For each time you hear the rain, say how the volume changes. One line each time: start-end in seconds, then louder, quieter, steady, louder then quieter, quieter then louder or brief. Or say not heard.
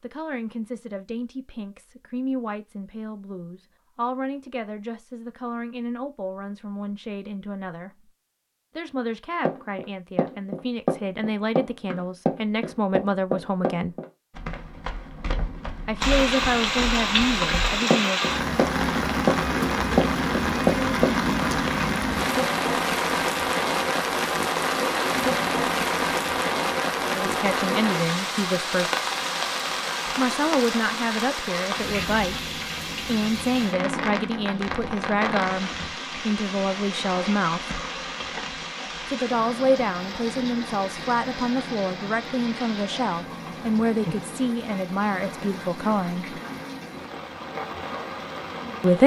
16.0-49.0 quieter.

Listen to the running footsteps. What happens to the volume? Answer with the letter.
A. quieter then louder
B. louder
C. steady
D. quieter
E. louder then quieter
A.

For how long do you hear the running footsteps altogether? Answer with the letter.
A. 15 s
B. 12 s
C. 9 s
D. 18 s
B.